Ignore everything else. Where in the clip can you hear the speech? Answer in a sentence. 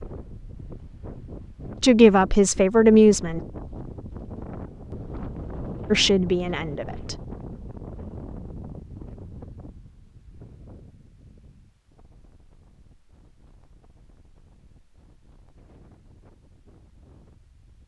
The speech can be heard from 1.8 to 3.4 s and from 5.9 to 7.2 s.